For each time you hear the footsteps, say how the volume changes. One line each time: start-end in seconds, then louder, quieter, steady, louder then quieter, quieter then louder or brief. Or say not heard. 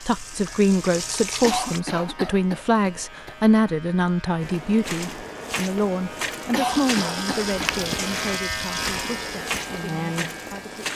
4.4-10.9 steady.